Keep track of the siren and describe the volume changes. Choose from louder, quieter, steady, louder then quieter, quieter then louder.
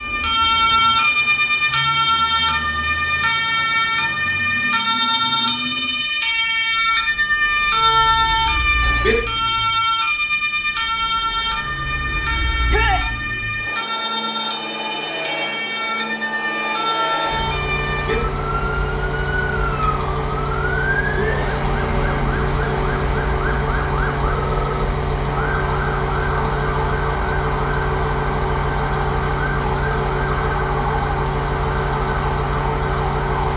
quieter.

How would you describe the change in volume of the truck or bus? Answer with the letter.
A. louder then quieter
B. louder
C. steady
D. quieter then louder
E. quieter
B.